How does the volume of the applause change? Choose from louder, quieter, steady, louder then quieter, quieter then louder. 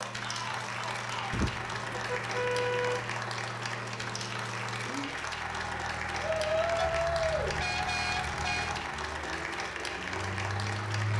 steady.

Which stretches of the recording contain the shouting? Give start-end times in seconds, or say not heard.
0.2-1.4, 6.2-7.5.